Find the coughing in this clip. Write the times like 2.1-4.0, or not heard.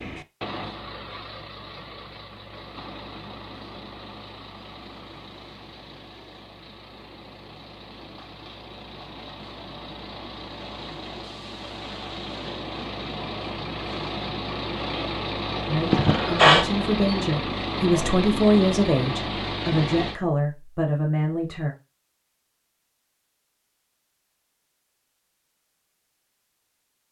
15.9-16.6.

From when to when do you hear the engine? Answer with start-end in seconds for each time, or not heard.
0.0-20.2.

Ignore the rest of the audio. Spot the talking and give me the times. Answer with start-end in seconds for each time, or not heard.
15.7-21.8.